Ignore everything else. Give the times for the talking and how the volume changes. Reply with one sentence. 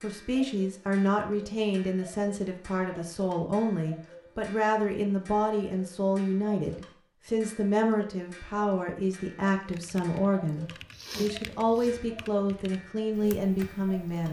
The talking can be heard from 0.0 to 14.2 s, at a steady volume.